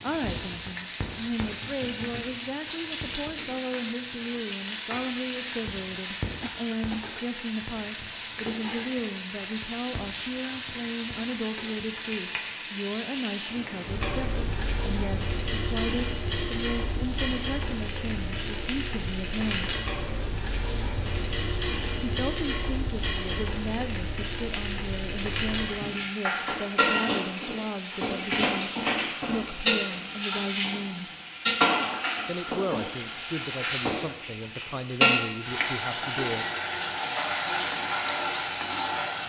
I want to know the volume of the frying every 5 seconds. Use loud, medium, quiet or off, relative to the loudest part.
medium, medium, medium, medium, medium, loud, loud, loud.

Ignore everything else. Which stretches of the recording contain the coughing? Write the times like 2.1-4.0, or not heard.
6.4-7.2.